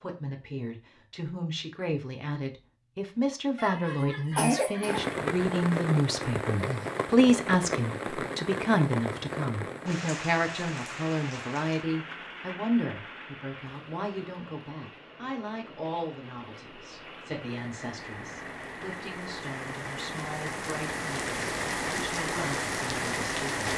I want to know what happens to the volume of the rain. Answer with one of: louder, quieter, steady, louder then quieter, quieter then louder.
quieter then louder.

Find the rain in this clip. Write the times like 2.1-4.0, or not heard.
4.8-23.7.